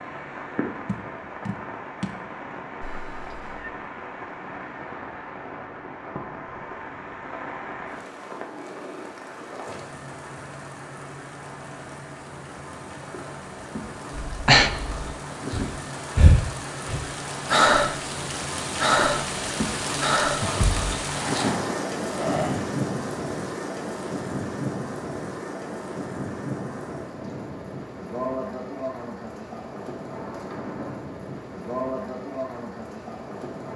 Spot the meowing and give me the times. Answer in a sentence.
The meowing can be heard from 2.8 to 3.7 s.